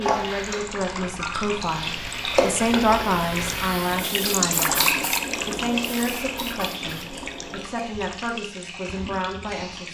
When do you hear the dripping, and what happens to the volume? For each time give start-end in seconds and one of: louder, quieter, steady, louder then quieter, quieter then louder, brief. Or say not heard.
0.2-9.9 louder then quieter.